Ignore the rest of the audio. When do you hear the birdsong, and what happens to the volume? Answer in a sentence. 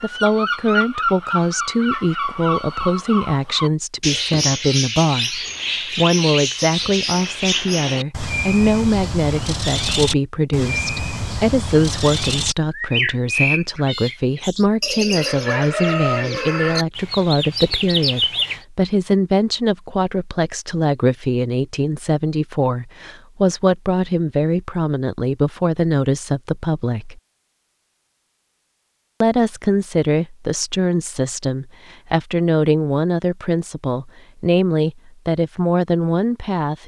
The birdsong can be heard from 0.0 to 18.6 s, at a steady volume.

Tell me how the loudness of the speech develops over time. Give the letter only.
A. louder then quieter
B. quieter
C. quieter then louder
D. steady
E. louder
D.